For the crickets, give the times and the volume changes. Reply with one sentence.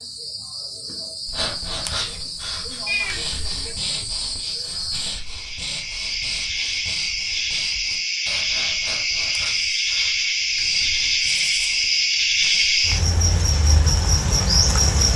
You can hear the crickets from 0.0 to 15.1 s, getting louder.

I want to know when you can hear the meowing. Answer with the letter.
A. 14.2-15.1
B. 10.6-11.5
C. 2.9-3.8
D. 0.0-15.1
C.